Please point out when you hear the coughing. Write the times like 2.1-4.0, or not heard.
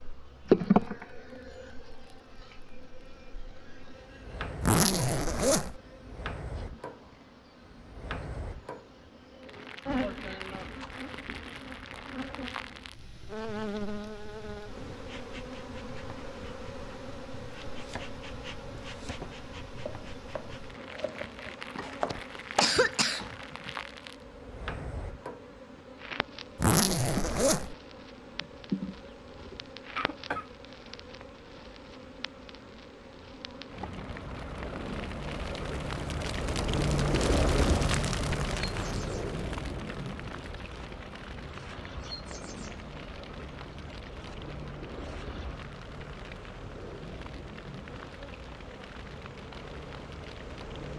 22.1-23.4, 29.9-31.0.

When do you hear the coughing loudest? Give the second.
23 s.